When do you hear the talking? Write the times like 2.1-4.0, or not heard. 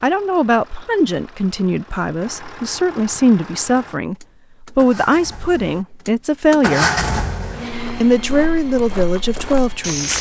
0.0-6.9, 8.0-10.1.